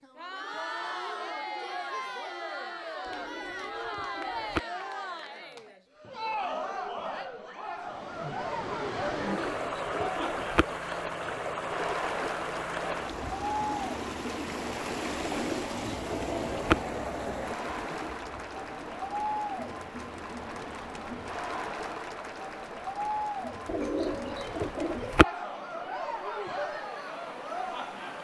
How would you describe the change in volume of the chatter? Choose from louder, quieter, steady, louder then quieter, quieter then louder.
steady.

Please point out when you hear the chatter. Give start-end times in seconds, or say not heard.
0.0-28.1.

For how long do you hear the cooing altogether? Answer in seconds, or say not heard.
6 s.